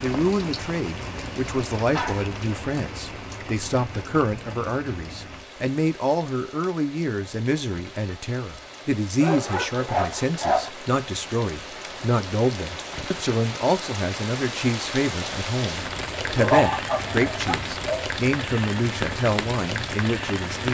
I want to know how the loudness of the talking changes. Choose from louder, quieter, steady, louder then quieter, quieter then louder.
steady.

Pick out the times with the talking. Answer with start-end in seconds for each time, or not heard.
0.0-20.6.